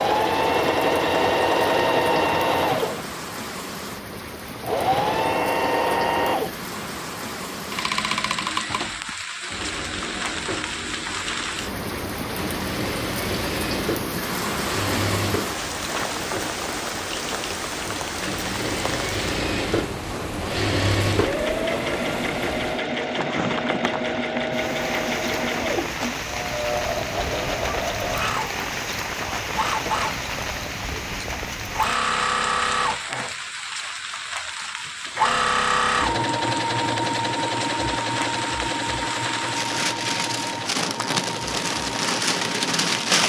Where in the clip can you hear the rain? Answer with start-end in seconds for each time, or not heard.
0.0-43.2.